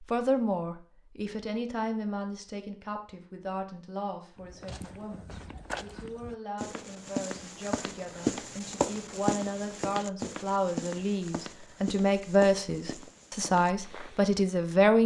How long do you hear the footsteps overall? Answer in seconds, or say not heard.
10 s.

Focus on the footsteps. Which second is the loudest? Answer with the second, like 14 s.
8 s.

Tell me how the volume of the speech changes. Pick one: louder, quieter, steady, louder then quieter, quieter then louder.
quieter then louder.